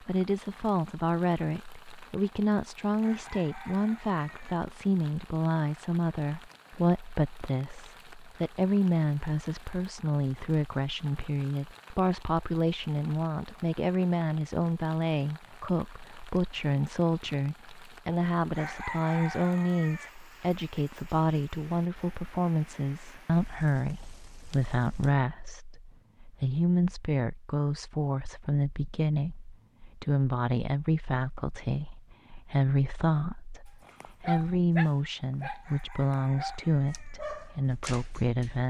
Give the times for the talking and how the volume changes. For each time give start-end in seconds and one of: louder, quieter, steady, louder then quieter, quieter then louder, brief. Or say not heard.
0.0-38.6 steady.